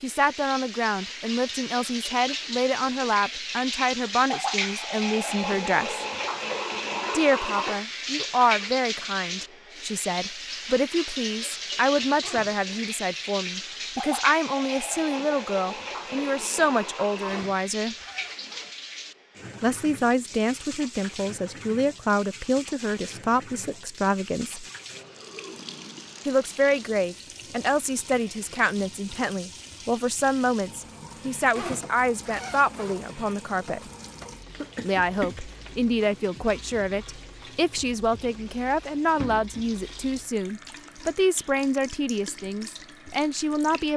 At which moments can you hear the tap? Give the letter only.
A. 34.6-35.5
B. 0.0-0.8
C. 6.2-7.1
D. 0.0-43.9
D.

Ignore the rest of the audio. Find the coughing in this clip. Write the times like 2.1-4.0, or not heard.
34.6-35.5.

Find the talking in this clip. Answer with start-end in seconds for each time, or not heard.
0.0-6.0, 7.1-17.9, 19.6-24.6, 26.2-33.8, 34.8-43.9.